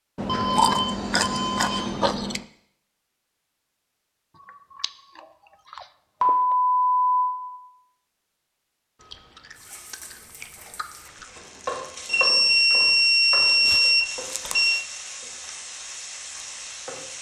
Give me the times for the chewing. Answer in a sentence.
The chewing can be heard from 0.1 to 2.5 s, from 4.5 to 6.5 s, from 9.0 to 11.2 s and from 13.7 to 14.8 s.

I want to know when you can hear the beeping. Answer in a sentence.
The beeping can be heard from 0.2 to 1.9 s, from 6.2 to 7.5 s and from 12.1 to 14.8 s.